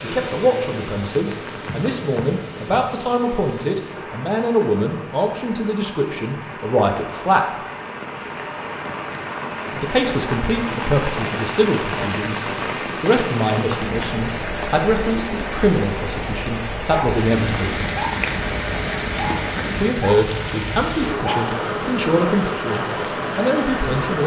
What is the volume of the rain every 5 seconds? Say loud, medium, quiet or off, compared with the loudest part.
medium, medium, loud, loud, loud.